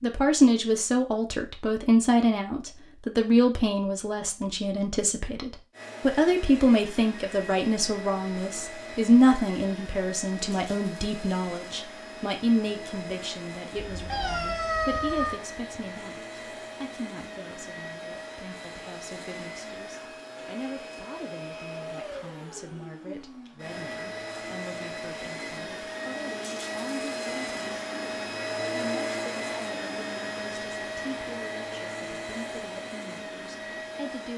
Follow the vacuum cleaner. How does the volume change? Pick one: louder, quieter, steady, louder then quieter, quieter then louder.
louder.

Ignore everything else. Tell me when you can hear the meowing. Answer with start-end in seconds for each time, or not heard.
13.8-15.4.